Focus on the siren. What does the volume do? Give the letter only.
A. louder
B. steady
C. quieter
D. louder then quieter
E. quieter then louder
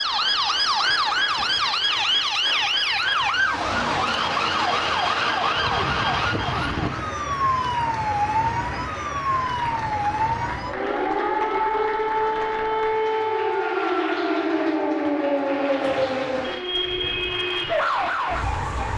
B.